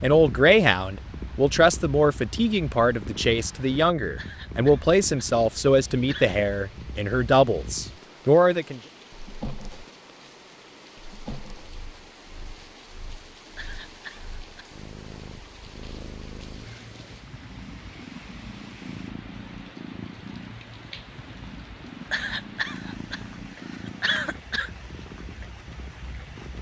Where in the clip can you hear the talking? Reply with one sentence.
You can hear the talking from 0.0 to 8.8 s.